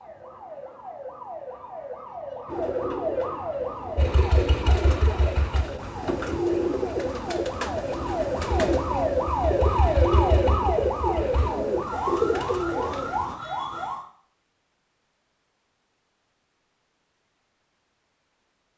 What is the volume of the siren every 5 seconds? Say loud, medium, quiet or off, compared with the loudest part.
medium, loud, loud, off.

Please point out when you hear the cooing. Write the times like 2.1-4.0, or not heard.
2.5-13.3.